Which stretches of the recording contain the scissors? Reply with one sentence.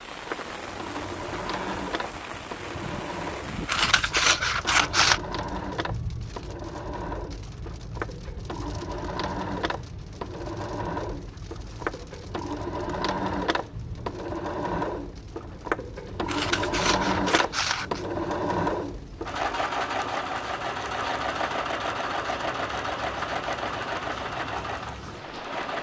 You can hear the scissors from 3.6 to 5.2 s and from 16.2 to 18.1 s.